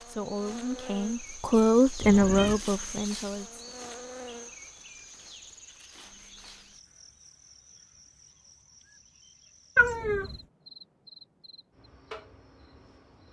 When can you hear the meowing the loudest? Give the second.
10 s.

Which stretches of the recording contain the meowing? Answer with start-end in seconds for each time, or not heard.
2.0-2.6, 9.8-10.3.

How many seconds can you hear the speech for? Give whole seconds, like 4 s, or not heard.
4 s.